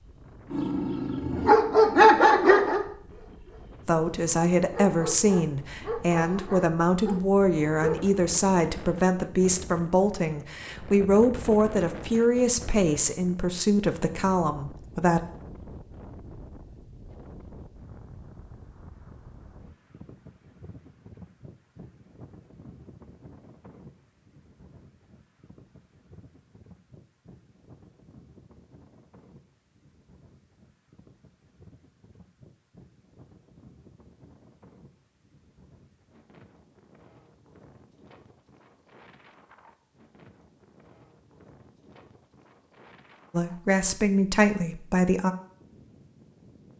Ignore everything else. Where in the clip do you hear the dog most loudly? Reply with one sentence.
The loudest moment of the dog is at 2 seconds.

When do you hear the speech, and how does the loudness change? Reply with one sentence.
You can hear the speech from 3.9 to 15.2 s, at a steady volume; and briefly from 43.3 to 45.4 s.